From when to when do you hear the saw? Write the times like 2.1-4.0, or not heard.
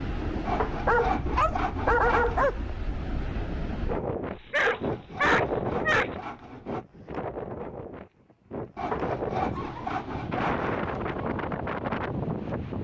0.5-2.5, 4.5-6.8, 8.8-11.0.